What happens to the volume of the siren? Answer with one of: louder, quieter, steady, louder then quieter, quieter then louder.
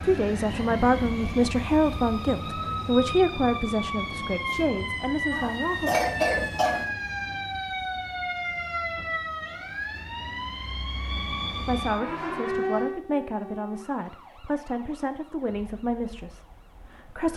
quieter.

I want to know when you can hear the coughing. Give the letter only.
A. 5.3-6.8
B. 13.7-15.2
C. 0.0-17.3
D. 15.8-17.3
A.